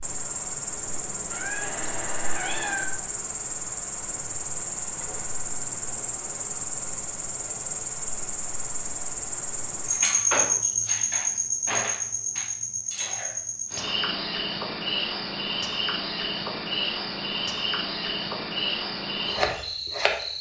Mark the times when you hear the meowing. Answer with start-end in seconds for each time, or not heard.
1.3-2.9.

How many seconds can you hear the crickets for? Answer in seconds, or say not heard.
20 s.